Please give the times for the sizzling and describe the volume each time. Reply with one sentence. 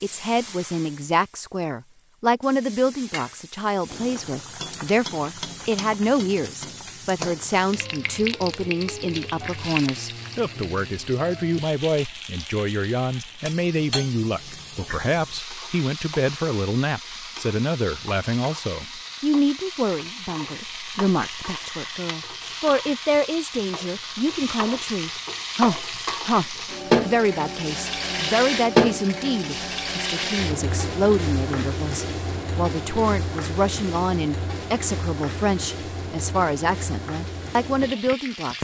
You can hear the sizzling from 0.0 to 38.6 s, getting louder then quieter.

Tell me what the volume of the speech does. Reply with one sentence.
The loudness of the speech stays about the same.